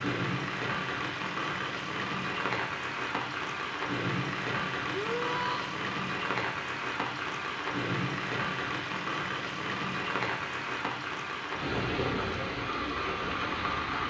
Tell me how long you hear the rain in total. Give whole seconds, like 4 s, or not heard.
14 s.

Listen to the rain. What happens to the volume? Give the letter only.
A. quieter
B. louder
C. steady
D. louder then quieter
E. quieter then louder
C.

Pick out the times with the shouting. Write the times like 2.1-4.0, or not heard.
4.9-5.8.